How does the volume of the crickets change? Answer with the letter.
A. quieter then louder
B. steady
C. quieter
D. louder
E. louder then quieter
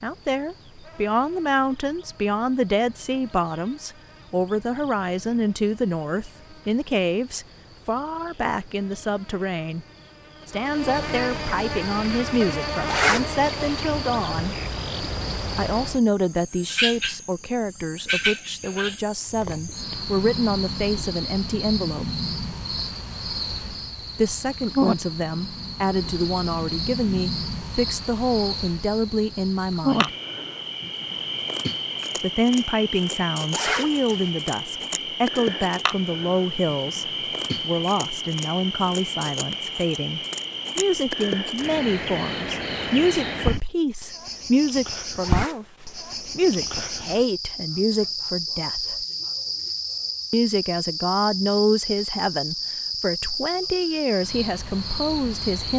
D.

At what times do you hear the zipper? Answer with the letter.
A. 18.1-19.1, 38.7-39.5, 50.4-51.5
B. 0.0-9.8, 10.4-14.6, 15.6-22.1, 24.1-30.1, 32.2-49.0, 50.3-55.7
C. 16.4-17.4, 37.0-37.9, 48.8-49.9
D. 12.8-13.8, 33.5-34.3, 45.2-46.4
D.